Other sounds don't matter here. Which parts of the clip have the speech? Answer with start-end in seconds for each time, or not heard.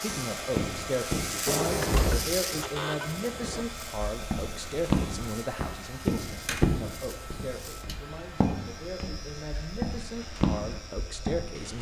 0.0-11.7.